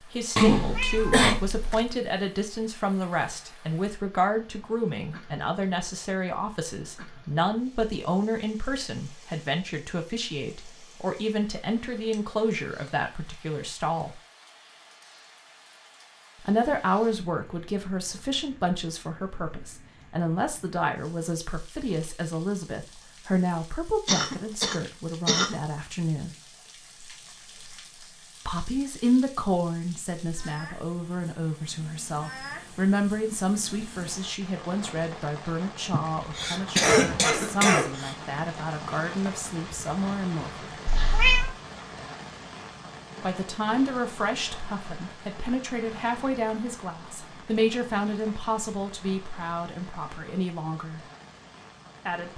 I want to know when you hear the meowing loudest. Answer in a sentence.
The volume of the meowing peaks at 41 seconds.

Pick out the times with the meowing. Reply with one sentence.
The meowing can be heard from 0.5 to 1.9 s and from 40.9 to 41.5 s.